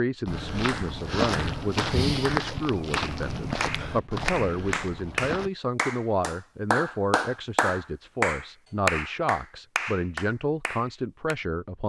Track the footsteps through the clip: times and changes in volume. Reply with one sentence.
You can hear the footsteps from 0.2 to 5.5 s, getting quieter.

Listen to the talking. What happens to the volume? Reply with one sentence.
The volume of the talking stays about the same.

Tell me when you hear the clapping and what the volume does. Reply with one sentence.
The clapping can be heard from 0.7 to 11.3 s, getting louder then quieter.